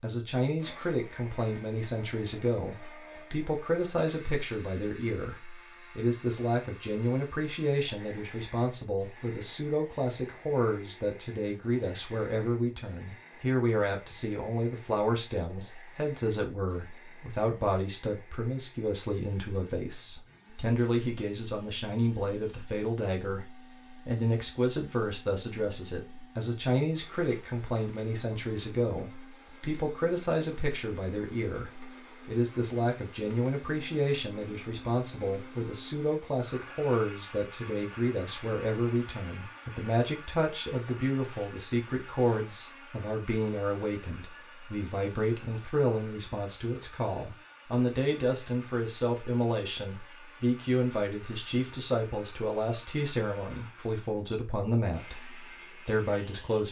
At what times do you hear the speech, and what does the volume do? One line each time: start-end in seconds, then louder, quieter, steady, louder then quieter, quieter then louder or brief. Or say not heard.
0.0-56.6 steady.